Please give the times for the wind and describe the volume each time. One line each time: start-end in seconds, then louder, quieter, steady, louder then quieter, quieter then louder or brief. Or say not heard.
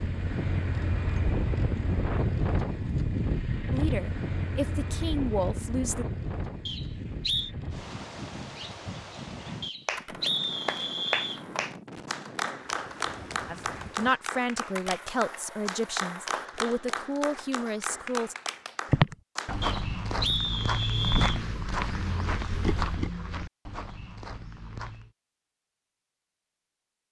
0.0-14.2 quieter.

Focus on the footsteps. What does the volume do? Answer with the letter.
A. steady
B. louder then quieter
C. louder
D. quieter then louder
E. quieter
E.